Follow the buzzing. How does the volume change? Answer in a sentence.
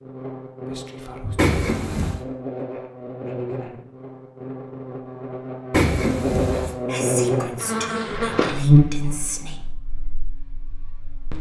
The loudness of the buzzing goes up, then down.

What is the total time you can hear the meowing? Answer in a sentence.
You can hear the meowing for 2 seconds altogether.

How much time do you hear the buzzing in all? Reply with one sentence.
The buzzing can be heard for 11 seconds in total.